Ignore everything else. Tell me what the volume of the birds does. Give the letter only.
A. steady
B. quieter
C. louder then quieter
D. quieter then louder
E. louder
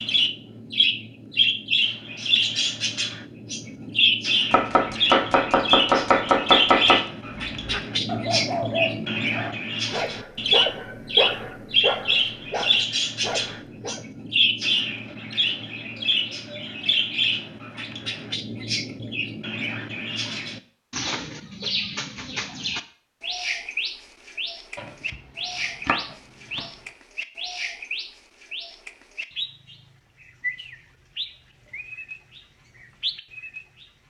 B.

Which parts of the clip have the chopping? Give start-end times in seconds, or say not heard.
4.5-7.0, 24.8-26.7.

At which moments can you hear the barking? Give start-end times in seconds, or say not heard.
7.5-14.1.